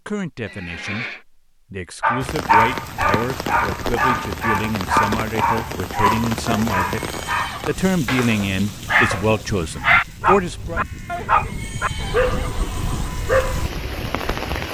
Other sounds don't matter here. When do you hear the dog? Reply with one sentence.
The dog can be heard from 2.0 to 13.7 s.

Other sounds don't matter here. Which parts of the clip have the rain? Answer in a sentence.
You can hear the rain from 2.2 to 14.6 s.